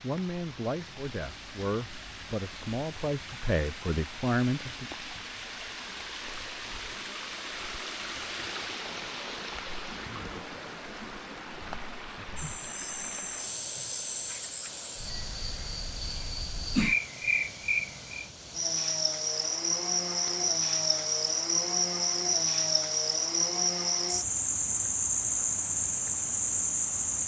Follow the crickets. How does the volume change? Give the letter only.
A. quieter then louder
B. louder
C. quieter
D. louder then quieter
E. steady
B.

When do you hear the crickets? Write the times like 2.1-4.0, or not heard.
12.3-27.2.